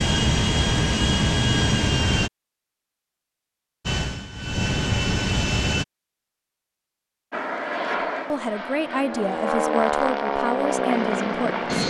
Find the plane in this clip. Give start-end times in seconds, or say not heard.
0.0-2.3, 3.9-5.8, 7.3-11.8.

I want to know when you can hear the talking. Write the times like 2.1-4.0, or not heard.
8.3-11.7.